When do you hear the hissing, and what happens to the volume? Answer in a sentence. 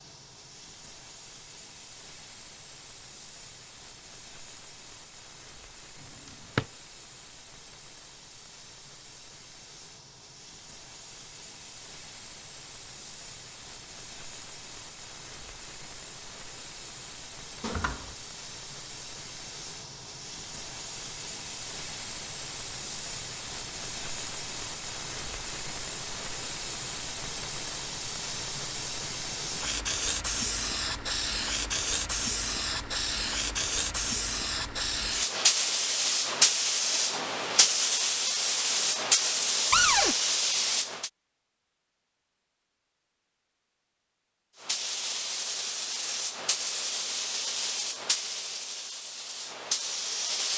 The hissing can be heard from 0.0 to 41.1 s, getting louder; and from 44.5 to 50.5 s, at a steady volume.